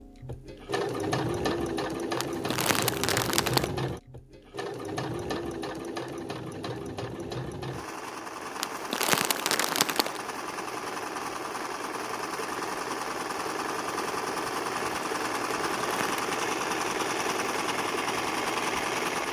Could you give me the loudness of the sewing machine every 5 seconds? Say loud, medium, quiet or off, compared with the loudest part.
loud, medium, loud, loud.